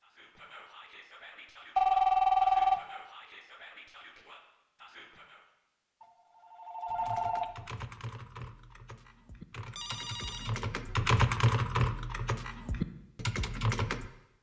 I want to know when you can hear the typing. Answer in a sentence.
The typing can be heard from 6.8 to 14.1 s.